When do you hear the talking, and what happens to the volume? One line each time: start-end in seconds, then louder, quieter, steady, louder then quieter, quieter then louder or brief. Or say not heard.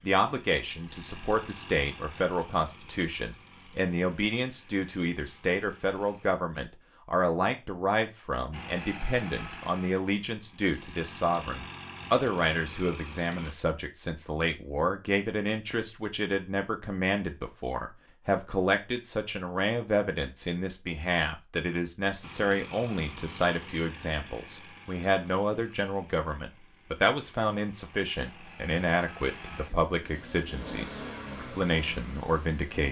0.0-32.8 steady.